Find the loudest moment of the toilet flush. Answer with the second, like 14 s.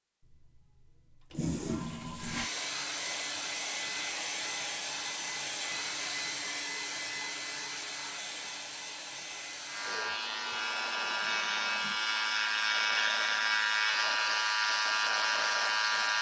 2 s.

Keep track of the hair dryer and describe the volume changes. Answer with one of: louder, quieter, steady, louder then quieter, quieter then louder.
quieter.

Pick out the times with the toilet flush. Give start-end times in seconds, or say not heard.
0.3-2.5, 10.5-12.0.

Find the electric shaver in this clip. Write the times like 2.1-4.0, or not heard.
9.7-16.1.